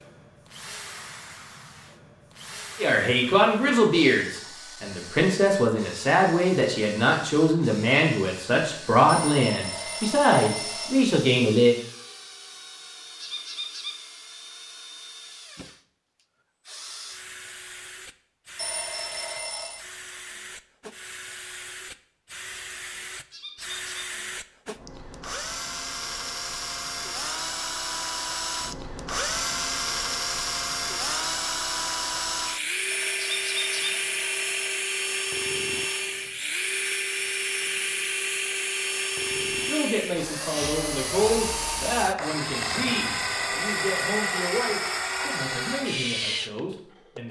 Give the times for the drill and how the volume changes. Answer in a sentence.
The drill can be heard from 0.0 to 47.2 s, getting louder.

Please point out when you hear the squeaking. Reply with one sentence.
The squeaking can be heard from 13.2 to 13.9 s, from 23.3 to 24.1 s and from 33.2 to 33.9 s.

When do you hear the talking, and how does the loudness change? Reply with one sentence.
The talking can be heard from 2.8 to 11.8 s, at a steady volume; and from 39.6 to 47.2 s, getting quieter.